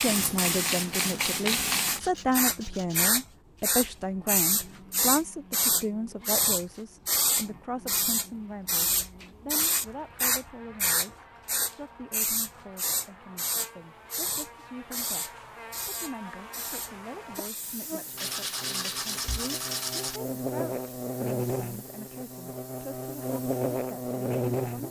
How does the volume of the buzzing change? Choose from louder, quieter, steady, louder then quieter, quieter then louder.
louder.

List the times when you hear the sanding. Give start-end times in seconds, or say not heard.
1.8-3.1, 18.1-20.2.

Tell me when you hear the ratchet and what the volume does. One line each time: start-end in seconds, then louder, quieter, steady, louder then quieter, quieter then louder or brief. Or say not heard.
not heard.